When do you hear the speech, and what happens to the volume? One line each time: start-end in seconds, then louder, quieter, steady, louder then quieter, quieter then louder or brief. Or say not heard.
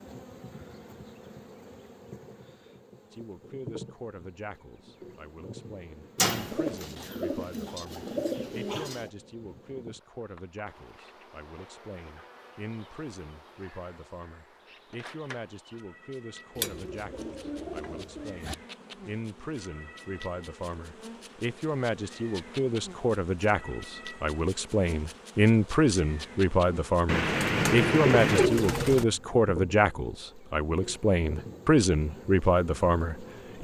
3.1-33.5 louder.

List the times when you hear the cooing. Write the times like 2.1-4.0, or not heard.
6.2-9.1, 16.6-18.6, 27.1-29.1.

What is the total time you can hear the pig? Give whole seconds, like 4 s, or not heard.
not heard.